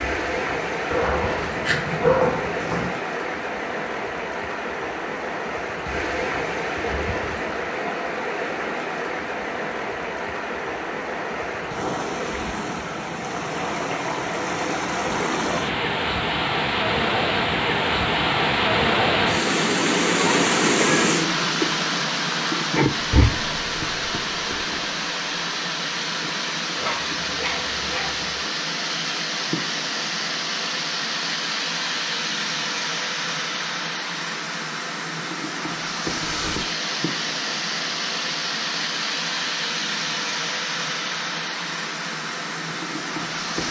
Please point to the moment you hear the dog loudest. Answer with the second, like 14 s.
2 s.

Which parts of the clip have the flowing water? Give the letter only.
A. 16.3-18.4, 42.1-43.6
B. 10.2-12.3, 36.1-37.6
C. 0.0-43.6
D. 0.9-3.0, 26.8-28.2
C.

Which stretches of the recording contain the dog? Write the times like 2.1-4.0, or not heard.
0.9-3.0, 26.8-28.2.